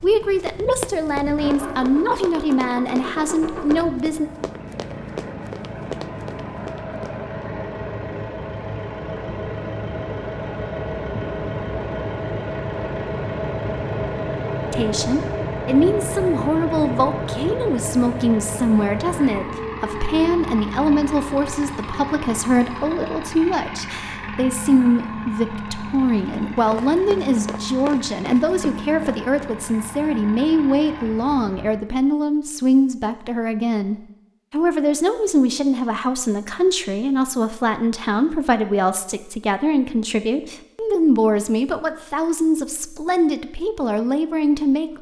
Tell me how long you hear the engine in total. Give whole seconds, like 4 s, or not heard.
32 s.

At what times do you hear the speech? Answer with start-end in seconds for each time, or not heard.
0.0-4.3, 14.7-44.9.